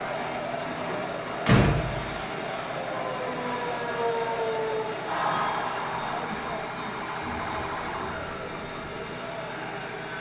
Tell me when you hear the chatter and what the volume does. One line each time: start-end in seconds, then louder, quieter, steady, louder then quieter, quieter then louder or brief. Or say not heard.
0.0-10.1 quieter.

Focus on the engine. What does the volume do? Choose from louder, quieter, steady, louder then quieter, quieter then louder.
steady.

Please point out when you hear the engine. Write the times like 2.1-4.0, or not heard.
0.0-10.1.